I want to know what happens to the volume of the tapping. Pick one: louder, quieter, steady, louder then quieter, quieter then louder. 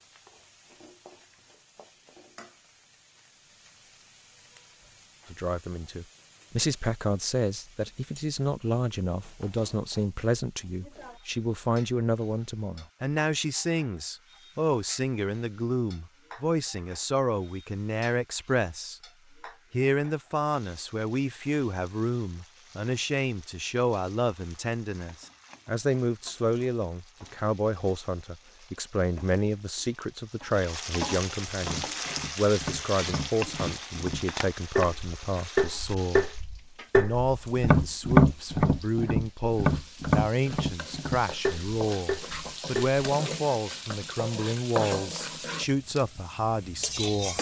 louder then quieter.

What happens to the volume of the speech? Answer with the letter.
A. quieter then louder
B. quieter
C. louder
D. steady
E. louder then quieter
D.